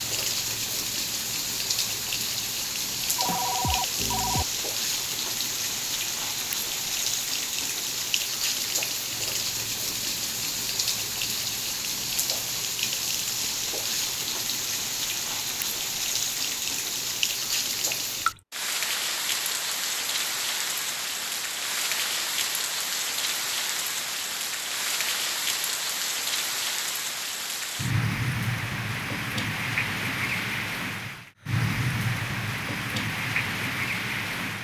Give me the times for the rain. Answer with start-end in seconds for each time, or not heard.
0.0-34.5.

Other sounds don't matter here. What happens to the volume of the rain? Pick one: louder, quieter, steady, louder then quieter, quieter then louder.
steady.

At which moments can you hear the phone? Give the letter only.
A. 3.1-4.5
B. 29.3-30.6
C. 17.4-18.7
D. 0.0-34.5
A.